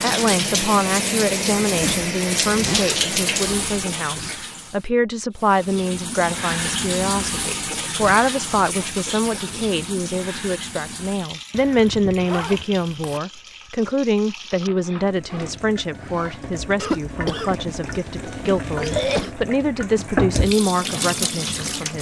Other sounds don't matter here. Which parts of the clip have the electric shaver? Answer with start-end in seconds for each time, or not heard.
not heard.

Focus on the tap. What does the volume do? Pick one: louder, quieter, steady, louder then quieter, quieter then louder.
quieter then louder.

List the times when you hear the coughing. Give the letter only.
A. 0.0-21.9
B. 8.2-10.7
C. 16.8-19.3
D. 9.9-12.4
C.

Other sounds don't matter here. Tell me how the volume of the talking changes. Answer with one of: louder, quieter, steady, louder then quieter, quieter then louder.
steady.